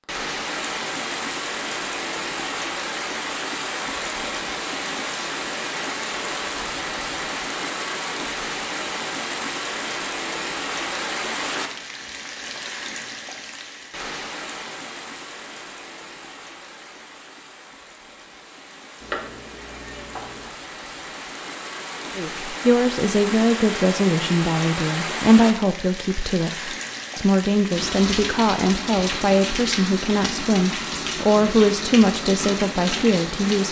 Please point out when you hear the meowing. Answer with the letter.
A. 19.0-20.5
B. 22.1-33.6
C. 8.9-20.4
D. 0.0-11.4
A.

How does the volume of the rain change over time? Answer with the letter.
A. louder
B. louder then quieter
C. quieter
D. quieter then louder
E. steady
D.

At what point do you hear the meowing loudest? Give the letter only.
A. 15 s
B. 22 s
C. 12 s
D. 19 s
D.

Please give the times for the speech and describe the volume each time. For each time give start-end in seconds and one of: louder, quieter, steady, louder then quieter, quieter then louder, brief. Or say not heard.
22.1-33.6 steady.